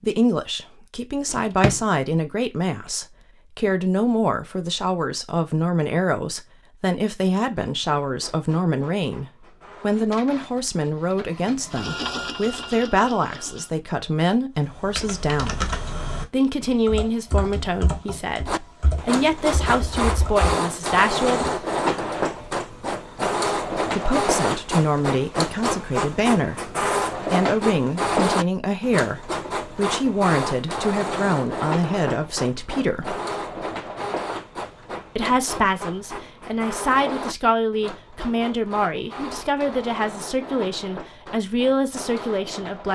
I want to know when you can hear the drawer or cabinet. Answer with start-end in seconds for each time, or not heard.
1.3-1.8.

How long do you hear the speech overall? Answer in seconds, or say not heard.
38 s.